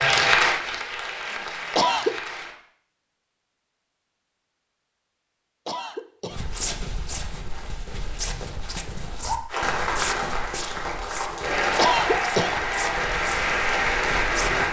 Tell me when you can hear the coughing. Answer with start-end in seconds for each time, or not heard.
1.8-2.2, 5.7-6.5, 11.8-12.7.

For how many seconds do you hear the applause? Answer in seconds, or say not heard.
8 s.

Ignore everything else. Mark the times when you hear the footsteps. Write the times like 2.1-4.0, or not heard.
6.3-14.6.